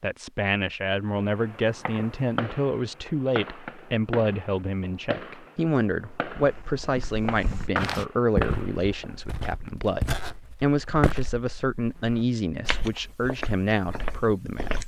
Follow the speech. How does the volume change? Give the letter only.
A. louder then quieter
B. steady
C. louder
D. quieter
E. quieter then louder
B.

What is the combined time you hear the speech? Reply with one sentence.
The speech can be heard for 15 seconds in total.